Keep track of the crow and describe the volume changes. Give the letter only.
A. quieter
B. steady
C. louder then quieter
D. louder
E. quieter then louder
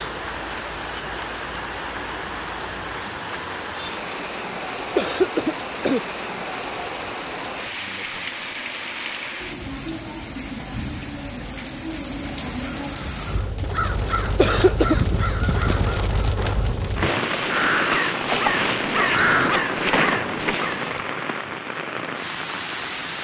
D.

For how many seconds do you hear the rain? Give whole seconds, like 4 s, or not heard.
23 s.